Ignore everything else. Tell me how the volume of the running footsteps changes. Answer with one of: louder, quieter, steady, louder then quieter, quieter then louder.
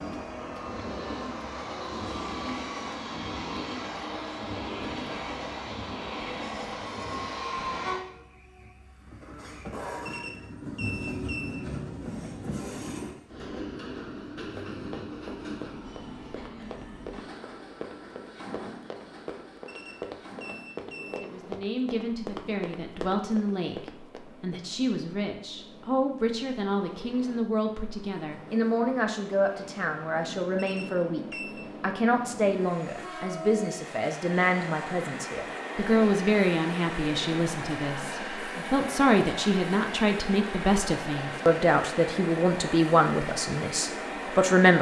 louder.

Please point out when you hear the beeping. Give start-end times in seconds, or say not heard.
10.1-11.6, 19.6-21.3, 30.6-31.6.